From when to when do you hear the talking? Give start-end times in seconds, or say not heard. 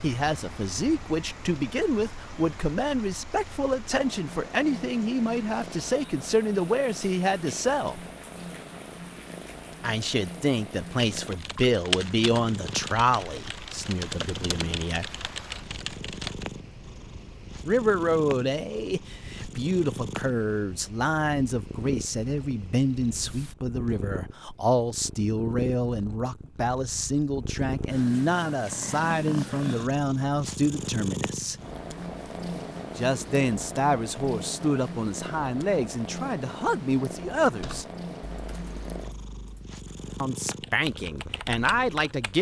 0.0-8.1, 9.8-15.1, 17.6-31.6, 33.0-37.9, 40.2-42.3.